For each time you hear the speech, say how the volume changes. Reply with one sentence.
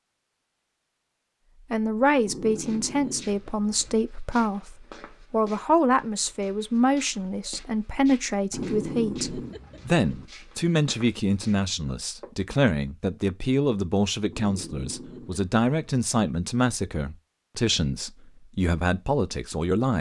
The speech can be heard from 1.7 to 19.9 s, at a steady volume.